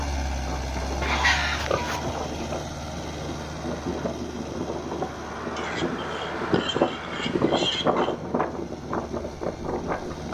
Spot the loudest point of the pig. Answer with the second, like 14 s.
1 s.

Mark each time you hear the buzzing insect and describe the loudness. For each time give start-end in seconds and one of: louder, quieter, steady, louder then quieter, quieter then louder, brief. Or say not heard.
not heard.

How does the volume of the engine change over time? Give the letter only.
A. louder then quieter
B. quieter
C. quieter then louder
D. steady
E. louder
B.